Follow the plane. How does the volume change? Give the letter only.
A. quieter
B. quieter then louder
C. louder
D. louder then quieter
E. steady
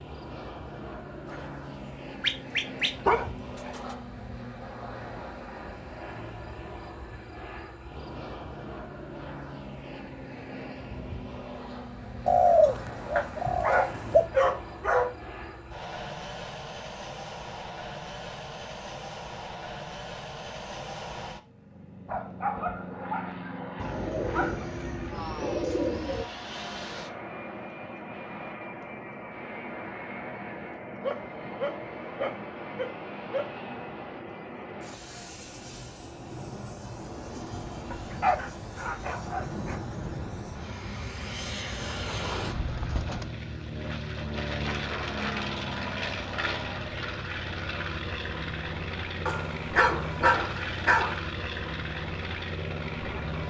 C.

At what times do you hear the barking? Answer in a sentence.
You can hear the barking from 1.3 to 4.0 s, from 13.2 to 15.2 s, from 22.1 to 24.7 s, from 31.0 to 33.5 s, from 37.9 to 39.8 s and from 49.2 to 51.2 s.